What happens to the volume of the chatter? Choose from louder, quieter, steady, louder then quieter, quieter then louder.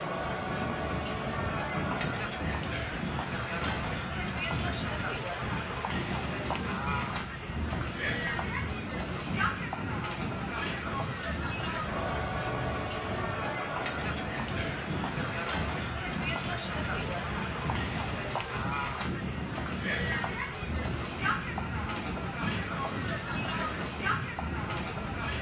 steady.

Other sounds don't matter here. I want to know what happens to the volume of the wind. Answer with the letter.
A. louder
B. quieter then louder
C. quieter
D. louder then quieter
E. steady
E.